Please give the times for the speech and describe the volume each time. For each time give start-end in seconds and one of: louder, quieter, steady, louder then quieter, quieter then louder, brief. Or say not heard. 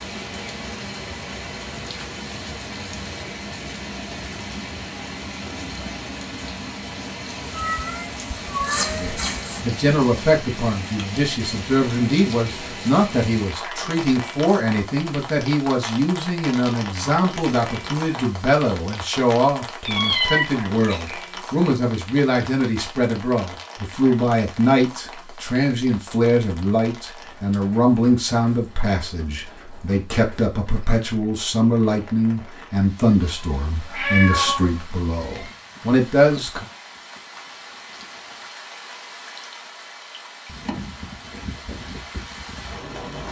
8.9-36.6 steady.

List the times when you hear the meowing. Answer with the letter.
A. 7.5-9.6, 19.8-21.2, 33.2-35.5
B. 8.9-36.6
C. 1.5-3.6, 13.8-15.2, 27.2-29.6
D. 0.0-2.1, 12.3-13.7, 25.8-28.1
A.